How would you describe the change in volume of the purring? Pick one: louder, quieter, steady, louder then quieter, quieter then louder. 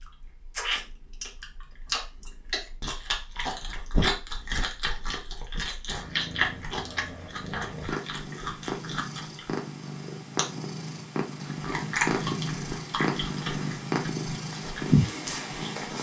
louder.